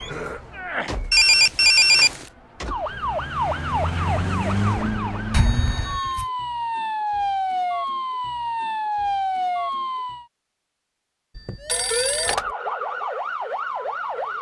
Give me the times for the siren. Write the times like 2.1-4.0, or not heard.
0.0-10.2, 11.6-14.3.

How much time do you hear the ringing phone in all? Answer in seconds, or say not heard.
3 s.